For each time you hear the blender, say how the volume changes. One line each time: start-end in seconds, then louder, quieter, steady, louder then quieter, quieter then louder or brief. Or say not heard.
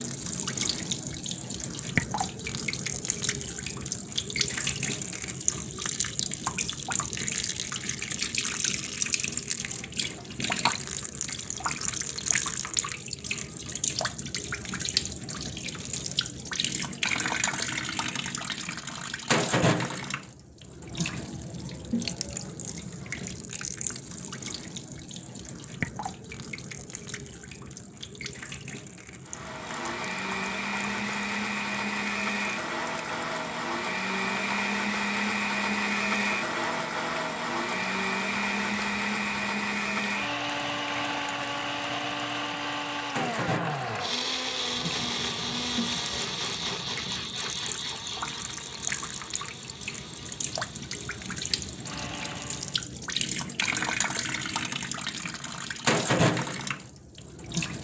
29.2-52.8 quieter.